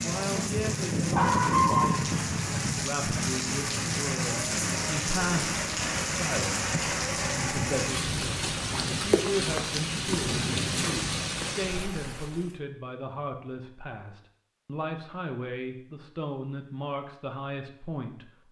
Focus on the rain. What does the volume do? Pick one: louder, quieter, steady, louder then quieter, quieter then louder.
steady.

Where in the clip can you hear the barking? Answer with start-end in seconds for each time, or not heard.
1.1-2.2.